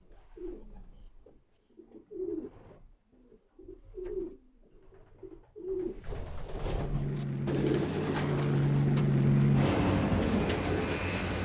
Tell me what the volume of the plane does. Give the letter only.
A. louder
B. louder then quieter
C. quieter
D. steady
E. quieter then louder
B.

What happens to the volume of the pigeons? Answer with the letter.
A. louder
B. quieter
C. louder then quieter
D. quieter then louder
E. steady
A.